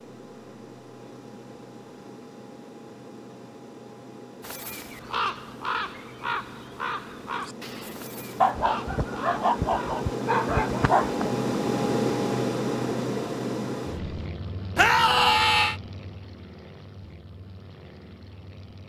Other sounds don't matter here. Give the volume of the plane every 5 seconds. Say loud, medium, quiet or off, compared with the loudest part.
quiet, medium, loud, quiet.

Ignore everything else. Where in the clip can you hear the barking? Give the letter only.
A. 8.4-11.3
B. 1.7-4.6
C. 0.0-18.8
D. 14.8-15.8
A.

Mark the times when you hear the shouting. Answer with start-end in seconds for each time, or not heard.
14.8-15.8.